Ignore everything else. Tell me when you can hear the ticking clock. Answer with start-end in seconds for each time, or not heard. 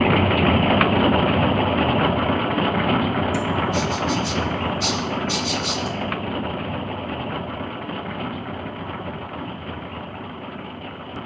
not heard.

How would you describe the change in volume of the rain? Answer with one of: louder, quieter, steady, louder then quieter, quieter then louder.
quieter.